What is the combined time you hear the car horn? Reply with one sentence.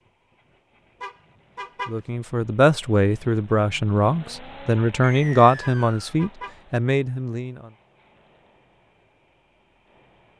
You can hear the car horn for 2 seconds altogether.